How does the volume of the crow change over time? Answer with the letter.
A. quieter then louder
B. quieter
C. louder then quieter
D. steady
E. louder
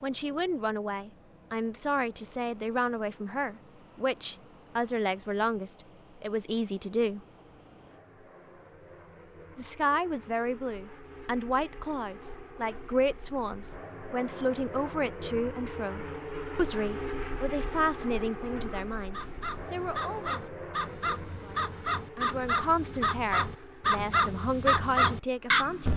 E.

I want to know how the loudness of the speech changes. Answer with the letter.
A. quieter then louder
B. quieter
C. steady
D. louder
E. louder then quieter
C.